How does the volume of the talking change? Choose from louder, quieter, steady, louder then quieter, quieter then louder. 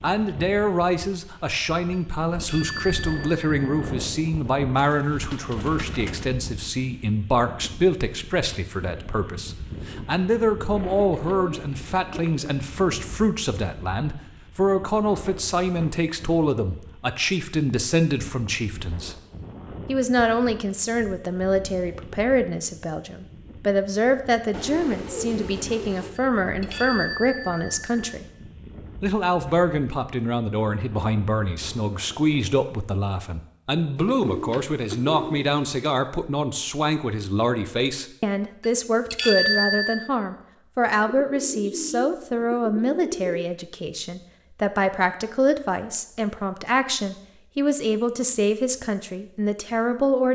steady.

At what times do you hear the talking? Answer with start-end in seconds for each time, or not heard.
0.0-19.1, 19.9-28.2, 29.0-50.3.